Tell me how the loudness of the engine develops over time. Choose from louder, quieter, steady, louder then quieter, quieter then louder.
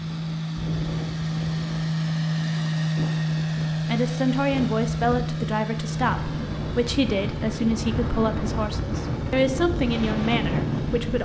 quieter.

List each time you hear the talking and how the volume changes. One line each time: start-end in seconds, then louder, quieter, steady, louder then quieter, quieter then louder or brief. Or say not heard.
3.9-11.2 steady.